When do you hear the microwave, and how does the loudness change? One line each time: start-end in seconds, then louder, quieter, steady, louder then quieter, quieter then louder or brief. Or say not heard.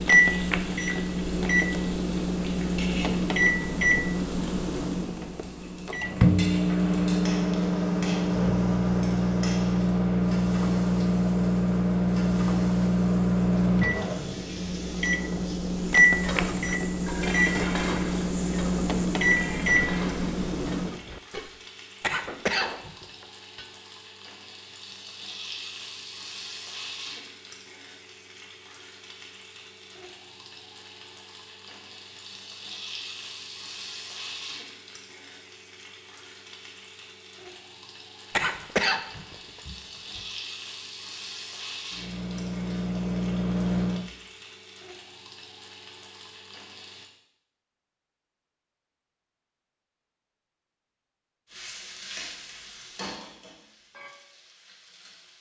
0.0-21.0 steady
41.9-44.1 brief.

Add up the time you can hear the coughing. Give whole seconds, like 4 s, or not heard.
3 s.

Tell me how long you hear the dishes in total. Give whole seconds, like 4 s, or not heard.
8 s.